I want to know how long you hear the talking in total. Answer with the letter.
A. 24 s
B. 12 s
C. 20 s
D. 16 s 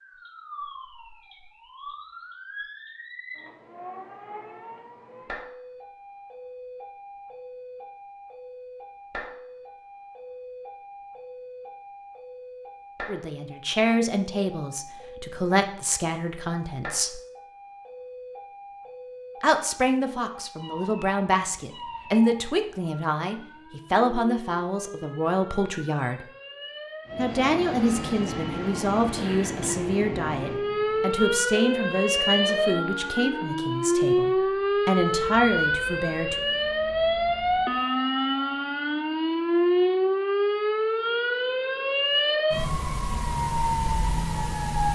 C.